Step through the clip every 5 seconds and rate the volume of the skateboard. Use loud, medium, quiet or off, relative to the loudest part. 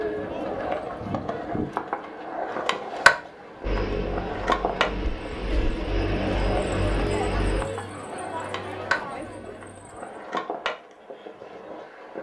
loud, medium, medium.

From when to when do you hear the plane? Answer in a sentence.
You can hear the plane from 3.6 to 7.7 s.